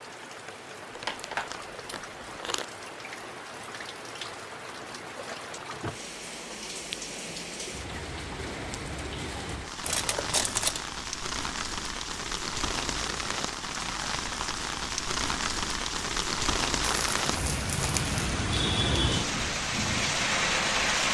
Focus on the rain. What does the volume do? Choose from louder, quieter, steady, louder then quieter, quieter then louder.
louder.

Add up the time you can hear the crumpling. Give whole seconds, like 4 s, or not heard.
4 s.